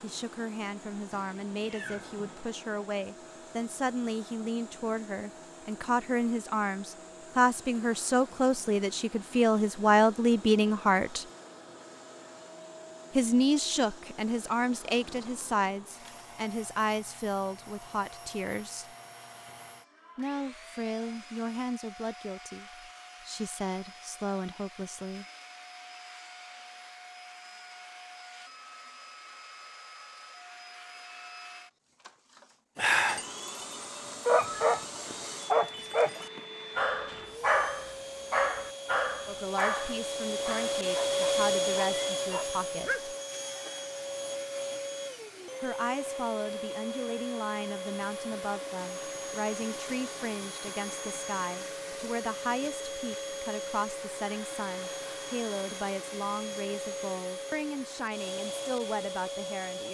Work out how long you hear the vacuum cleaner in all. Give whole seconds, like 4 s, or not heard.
60 s.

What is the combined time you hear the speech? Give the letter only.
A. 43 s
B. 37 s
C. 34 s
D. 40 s
D.